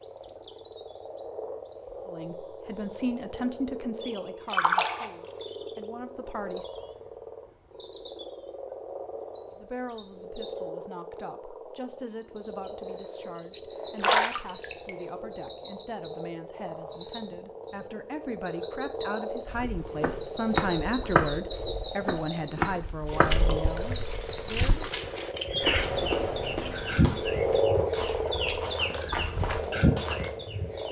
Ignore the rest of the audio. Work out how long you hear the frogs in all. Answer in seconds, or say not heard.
31 s.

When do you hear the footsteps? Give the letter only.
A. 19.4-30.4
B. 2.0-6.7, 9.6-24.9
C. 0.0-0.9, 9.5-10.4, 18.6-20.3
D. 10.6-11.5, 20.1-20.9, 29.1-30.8
A.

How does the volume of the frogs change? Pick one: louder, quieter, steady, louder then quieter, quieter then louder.
louder.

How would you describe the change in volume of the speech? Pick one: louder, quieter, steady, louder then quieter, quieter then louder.
quieter then louder.